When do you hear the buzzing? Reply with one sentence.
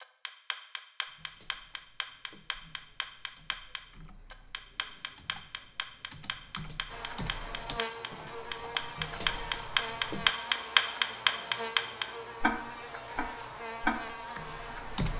You can hear the buzzing from 6.8 to 15.1 s.